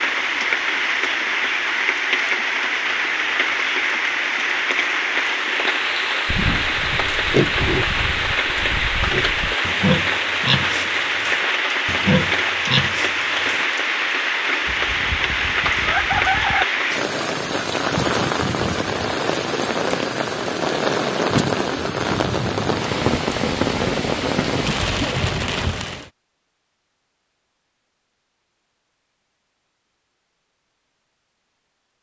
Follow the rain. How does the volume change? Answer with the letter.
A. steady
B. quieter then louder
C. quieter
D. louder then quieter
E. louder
A.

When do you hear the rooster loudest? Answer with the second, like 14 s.
16 s.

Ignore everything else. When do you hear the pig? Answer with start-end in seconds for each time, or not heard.
6.2-13.7.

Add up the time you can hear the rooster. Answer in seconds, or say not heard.
2 s.